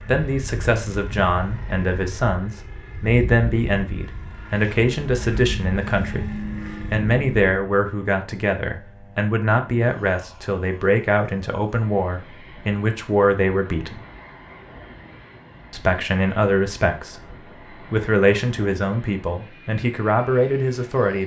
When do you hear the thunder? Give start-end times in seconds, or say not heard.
not heard.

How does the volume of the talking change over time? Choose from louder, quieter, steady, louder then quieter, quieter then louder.
steady.